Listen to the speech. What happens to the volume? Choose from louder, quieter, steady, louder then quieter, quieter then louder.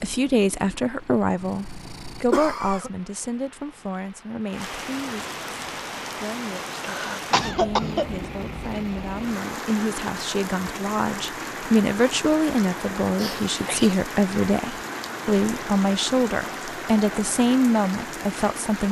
quieter then louder.